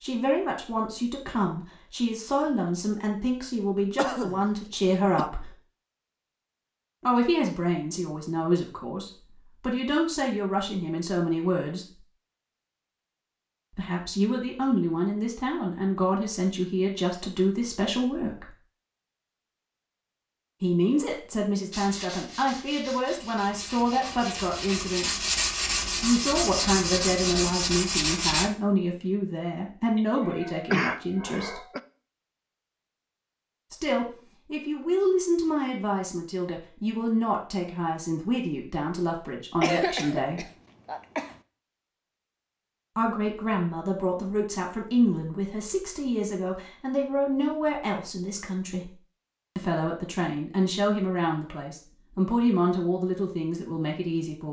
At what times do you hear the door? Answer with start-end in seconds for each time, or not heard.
not heard.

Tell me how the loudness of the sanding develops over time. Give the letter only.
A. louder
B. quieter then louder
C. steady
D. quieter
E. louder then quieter
A.